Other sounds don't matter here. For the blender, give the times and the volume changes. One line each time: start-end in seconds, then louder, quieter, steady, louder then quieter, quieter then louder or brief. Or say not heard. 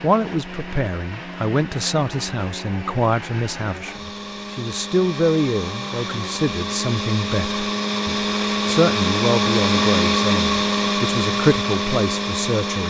0.0-12.8 louder.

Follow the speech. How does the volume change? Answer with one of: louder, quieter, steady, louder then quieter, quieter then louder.
steady.